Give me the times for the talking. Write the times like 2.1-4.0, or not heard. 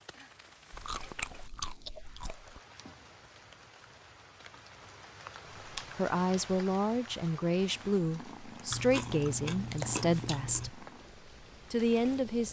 5.8-10.8, 11.7-12.4.